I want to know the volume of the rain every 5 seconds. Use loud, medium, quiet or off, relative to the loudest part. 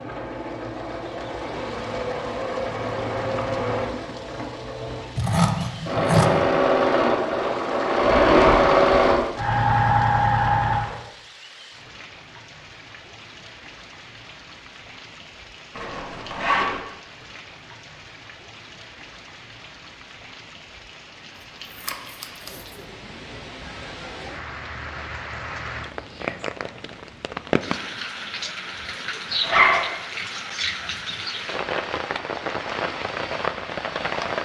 quiet, quiet, quiet, quiet, medium, loud, loud.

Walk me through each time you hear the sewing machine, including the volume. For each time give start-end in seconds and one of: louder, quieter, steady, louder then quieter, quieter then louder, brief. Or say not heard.
0.0-11.0 louder.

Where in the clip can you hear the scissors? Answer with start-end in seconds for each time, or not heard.
5.2-6.2, 21.8-22.6.